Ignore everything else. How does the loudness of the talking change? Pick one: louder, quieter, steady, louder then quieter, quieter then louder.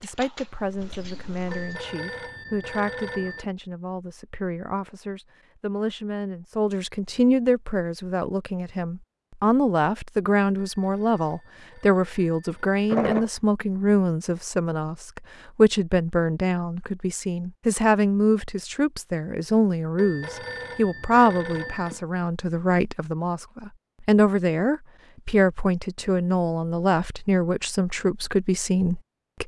louder.